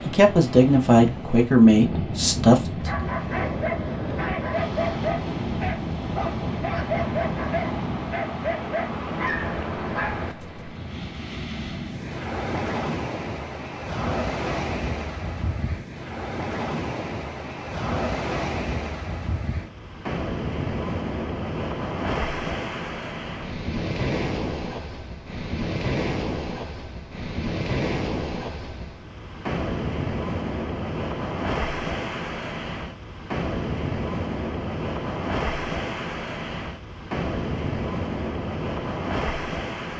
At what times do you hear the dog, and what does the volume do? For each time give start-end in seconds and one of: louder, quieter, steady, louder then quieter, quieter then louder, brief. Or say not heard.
2.7-10.8 steady.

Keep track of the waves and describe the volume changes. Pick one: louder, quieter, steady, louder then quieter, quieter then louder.
steady.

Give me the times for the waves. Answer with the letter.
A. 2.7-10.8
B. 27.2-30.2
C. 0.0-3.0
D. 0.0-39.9
D.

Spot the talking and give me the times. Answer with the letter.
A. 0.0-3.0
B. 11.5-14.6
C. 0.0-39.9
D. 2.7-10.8
A.